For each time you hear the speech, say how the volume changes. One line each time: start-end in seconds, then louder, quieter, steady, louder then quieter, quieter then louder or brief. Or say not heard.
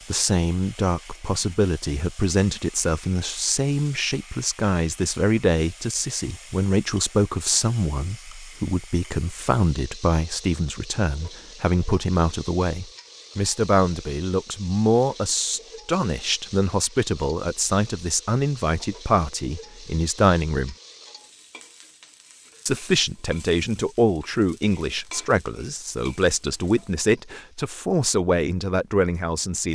0.1-20.8 steady
22.6-29.7 steady.